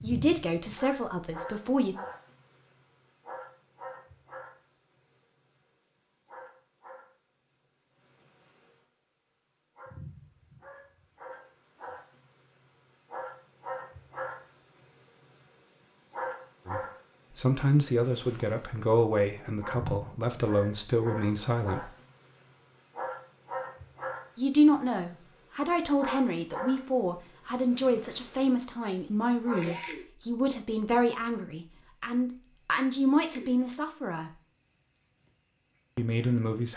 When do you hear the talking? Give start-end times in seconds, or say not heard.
0.0-1.9, 16.6-21.9, 24.4-34.3, 36.0-36.7.